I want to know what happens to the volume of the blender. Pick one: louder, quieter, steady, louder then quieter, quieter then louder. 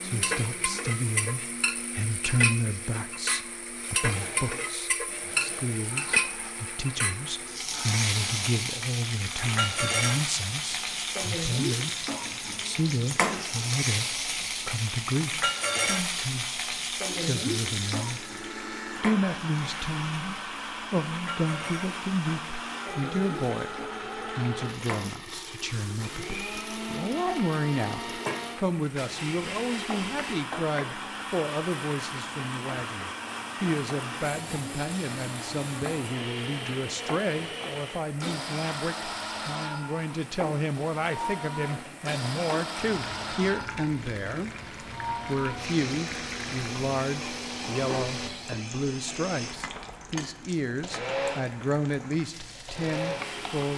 louder.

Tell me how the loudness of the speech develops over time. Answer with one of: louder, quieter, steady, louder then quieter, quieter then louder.
steady.